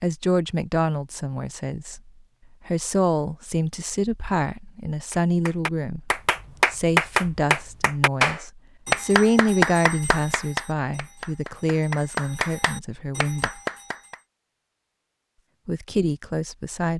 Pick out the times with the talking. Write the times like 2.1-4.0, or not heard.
0.0-13.6, 15.7-16.9.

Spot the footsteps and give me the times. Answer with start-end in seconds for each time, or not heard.
not heard.